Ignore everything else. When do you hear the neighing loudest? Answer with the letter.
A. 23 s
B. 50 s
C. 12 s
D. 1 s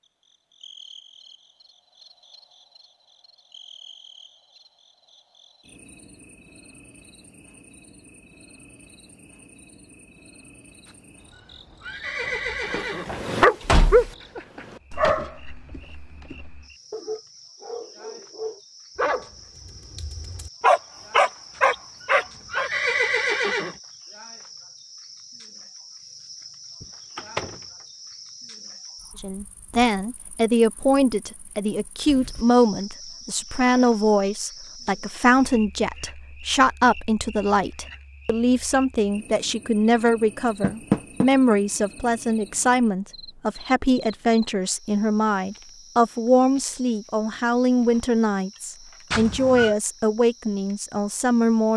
A.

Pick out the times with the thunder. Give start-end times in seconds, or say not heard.
not heard.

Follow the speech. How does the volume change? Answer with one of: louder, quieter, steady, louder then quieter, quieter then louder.
steady.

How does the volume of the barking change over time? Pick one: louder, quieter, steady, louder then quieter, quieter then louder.
quieter then louder.